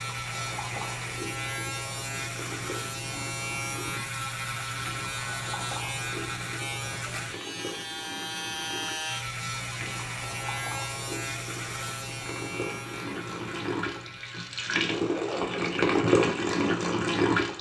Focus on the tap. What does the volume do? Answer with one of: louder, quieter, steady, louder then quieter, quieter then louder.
louder.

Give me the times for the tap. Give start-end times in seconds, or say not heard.
0.0-17.5.